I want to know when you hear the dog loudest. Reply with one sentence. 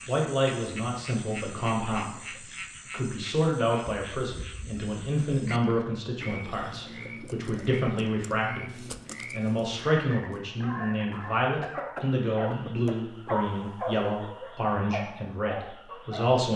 The volume of the dog peaks at 13 seconds.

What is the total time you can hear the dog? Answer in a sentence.
You can hear the dog for 6 seconds altogether.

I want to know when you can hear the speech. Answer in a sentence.
You can hear the speech from 0.1 to 16.5 s.